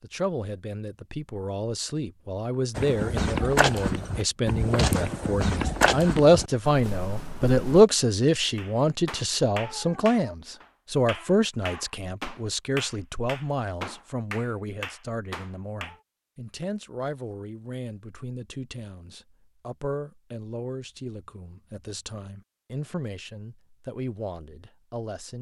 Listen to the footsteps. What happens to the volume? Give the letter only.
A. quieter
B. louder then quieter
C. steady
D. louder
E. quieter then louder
A.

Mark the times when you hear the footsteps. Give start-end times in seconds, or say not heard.
2.8-7.8.